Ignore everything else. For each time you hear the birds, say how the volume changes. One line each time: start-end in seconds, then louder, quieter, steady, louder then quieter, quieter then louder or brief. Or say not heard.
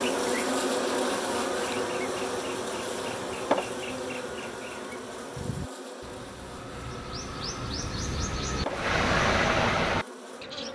0.0-10.6 louder.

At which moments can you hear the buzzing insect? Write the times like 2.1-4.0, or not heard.
0.0-10.6.